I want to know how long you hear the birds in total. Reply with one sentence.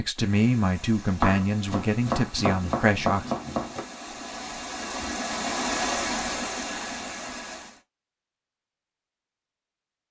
The birds can't be heard in this clip.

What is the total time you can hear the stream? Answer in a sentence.
The stream can be heard for 8 seconds in total.